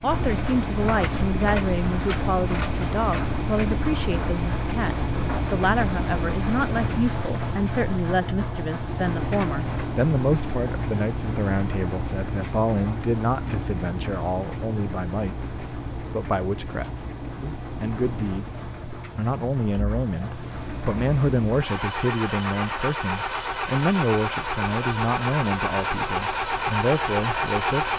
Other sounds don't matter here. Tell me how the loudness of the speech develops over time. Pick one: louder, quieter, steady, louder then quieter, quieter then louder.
steady.